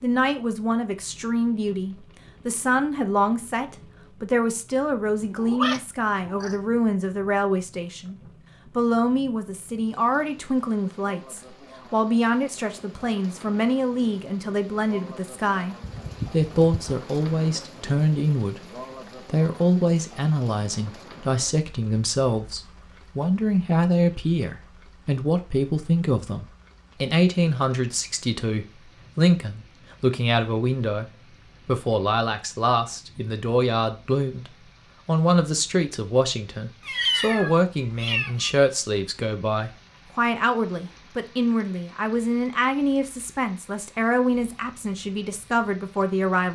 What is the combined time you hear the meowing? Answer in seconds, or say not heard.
4 s.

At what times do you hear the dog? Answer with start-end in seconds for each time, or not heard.
not heard.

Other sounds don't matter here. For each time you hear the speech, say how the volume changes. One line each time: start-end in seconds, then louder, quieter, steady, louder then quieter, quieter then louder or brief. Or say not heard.
0.0-46.5 steady.